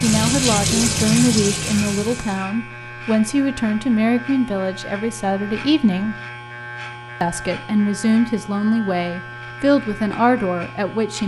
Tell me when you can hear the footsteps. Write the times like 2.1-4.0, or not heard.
not heard.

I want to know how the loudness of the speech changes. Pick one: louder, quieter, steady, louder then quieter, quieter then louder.
steady.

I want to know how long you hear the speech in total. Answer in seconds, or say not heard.
10 s.